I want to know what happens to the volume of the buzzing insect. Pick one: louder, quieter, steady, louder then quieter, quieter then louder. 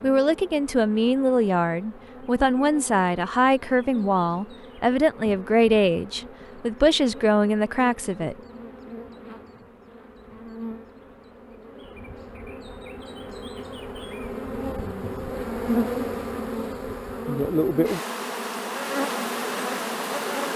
louder.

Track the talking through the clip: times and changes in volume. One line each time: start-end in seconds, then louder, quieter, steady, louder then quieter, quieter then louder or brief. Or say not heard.
0.0-8.3 steady.